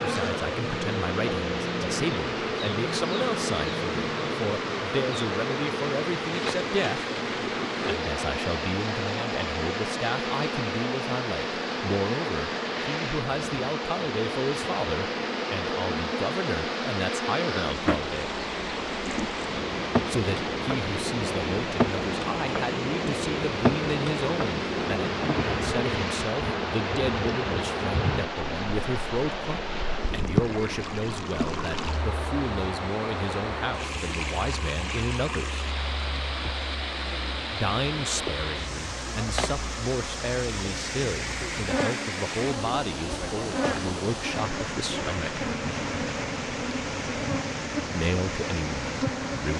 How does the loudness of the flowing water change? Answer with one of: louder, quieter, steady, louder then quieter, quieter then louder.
steady.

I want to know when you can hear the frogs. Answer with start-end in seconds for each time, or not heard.
not heard.